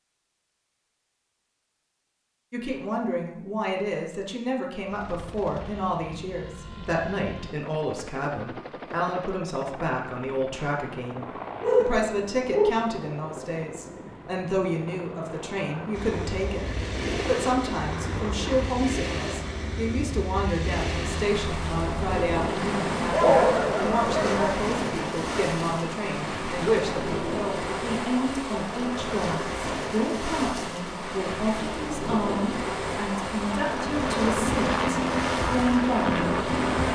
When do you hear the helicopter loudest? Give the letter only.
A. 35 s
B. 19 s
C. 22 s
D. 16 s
A.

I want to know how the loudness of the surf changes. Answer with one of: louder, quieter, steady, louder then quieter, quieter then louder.
steady.